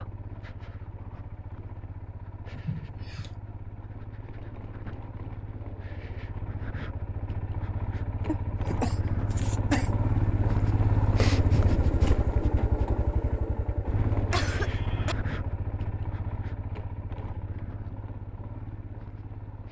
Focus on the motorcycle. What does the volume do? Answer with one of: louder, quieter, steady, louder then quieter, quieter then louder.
louder then quieter.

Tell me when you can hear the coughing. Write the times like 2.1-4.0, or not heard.
2.5-3.3, 8.2-9.9, 14.3-15.2.